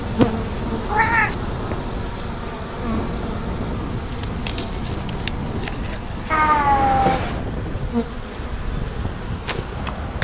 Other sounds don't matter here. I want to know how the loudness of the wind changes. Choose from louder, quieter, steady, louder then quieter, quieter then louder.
steady.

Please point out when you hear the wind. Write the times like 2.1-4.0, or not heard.
0.0-10.1.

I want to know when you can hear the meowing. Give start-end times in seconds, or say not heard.
0.8-1.8, 6.3-7.5.